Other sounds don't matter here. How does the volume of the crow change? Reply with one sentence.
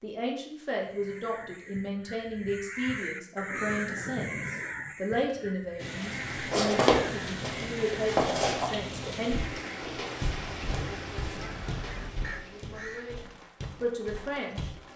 The volume of the crow goes up, then down.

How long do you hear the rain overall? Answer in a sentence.
You can hear the rain for 9 seconds altogether.